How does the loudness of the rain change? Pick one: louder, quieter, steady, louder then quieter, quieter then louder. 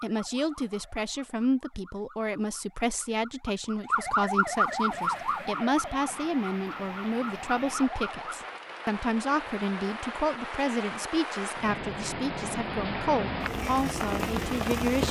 louder.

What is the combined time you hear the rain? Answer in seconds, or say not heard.
10 s.